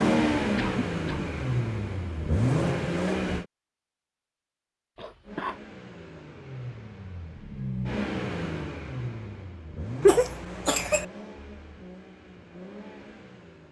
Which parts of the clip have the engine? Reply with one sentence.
You can hear the engine from 0.0 to 3.5 s and from 5.2 to 13.6 s.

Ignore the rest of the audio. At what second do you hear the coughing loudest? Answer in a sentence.
The volume of the coughing peaks at 10 seconds.